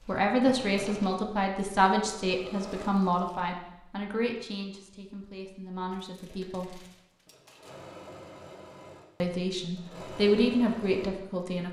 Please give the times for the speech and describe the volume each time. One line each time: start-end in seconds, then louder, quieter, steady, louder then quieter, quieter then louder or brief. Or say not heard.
0.1-6.8 quieter
9.2-11.6 brief.